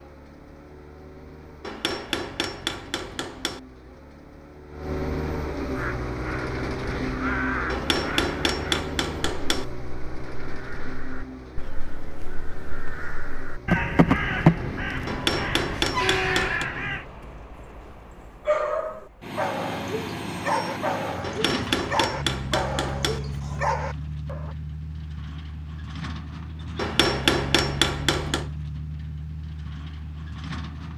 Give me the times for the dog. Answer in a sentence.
You can hear the dog from 18.4 to 24.6 s.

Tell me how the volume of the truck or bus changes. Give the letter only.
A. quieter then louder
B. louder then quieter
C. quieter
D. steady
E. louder
D.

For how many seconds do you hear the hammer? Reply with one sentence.
You can hear the hammer for 9 seconds altogether.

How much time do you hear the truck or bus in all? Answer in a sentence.
You can hear the truck or bus for 31 seconds altogether.